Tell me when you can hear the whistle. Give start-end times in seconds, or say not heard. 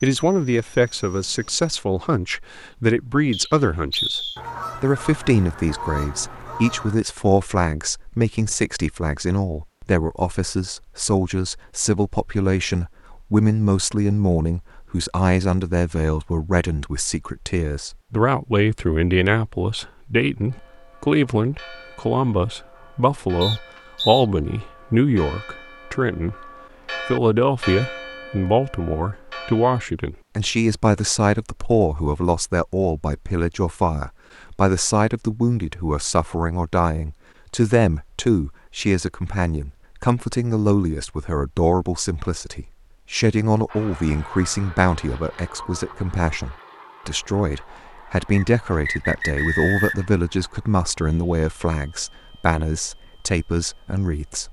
3.3-4.4, 23.4-24.2, 48.3-50.1.